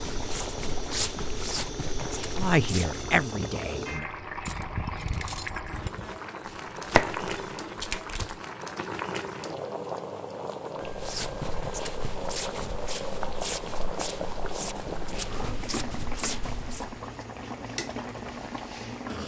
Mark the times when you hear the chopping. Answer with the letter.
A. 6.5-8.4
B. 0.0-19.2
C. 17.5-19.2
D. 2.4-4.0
A.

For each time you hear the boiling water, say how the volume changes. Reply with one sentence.
The boiling water can be heard from 0.0 to 19.2 s, at a steady volume.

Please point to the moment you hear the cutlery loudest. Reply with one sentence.
The loudest moment of the cutlery is at 5 seconds.